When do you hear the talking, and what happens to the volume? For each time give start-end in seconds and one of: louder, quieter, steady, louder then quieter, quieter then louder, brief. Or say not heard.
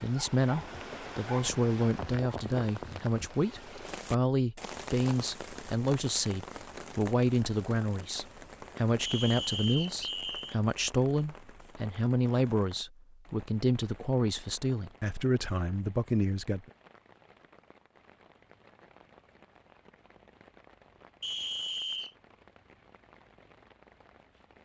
0.0-16.7 steady.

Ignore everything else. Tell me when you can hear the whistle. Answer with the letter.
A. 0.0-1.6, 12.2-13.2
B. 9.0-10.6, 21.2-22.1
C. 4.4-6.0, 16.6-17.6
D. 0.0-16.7
B.